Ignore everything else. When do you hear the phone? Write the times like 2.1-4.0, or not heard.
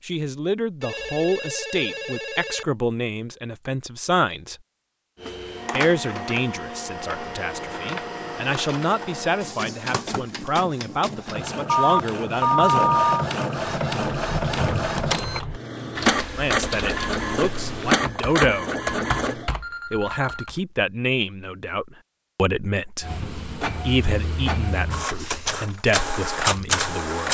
0.8-2.6, 11.7-13.2, 19.4-20.5.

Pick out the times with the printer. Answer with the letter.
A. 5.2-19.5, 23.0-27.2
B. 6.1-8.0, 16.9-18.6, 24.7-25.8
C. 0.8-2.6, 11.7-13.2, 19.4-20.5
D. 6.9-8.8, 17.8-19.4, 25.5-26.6
A.